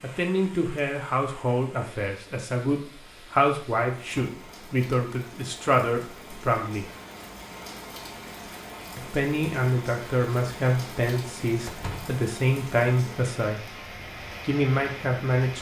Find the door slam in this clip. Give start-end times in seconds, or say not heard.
4.0-4.4, 11.7-12.2.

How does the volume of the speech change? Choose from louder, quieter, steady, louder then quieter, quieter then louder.
steady.